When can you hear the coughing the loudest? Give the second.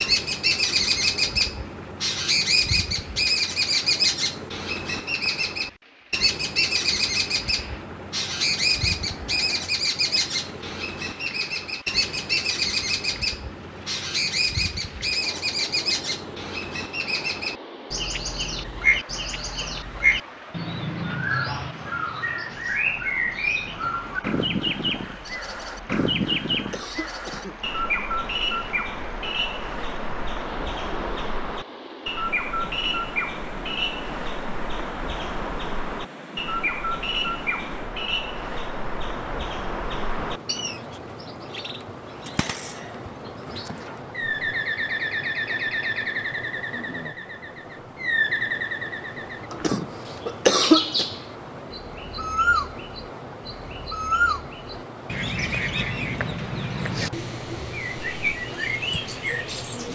51 s.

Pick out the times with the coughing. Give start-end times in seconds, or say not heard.
25.8-27.6, 49.5-51.0.